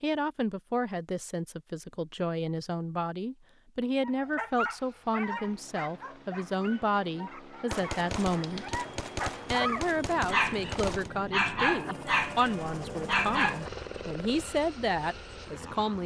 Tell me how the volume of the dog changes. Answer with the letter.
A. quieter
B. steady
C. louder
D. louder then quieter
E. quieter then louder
E.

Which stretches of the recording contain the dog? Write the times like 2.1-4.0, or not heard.
4.0-13.7.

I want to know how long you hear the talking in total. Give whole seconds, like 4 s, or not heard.
15 s.